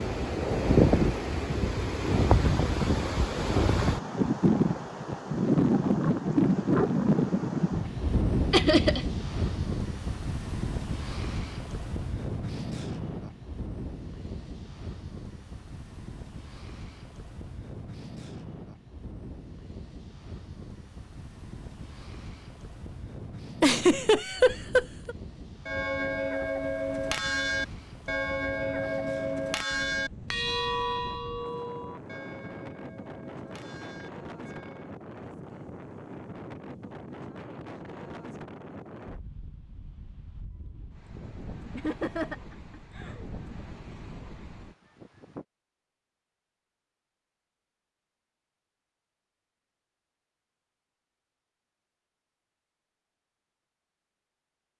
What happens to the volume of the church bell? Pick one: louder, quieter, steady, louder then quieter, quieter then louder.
quieter.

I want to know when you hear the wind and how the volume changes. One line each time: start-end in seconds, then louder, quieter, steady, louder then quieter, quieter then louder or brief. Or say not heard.
0.0-45.5 quieter.